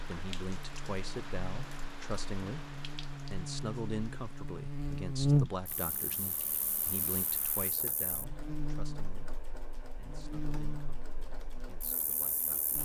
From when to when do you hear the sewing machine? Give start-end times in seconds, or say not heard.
5.6-12.8.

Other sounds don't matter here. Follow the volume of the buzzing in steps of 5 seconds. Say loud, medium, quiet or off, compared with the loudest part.
medium, loud, medium.